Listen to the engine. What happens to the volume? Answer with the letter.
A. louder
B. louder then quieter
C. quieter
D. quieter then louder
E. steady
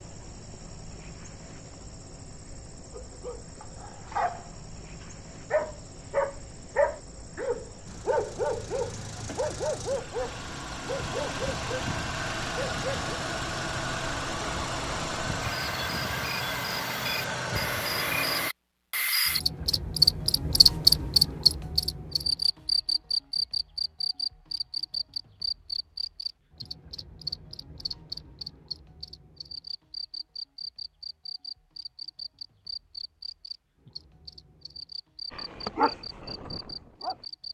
A.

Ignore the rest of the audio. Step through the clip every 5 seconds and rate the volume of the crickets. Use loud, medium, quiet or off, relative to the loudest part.
quiet, quiet, quiet, medium, loud, quiet, quiet, quiet.